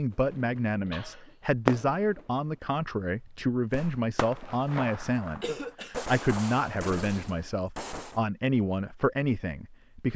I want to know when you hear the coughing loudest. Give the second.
6 s.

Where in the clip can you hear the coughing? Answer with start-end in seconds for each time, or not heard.
0.8-1.4, 5.4-6.1.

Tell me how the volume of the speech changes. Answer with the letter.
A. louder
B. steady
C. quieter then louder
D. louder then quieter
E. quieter
B.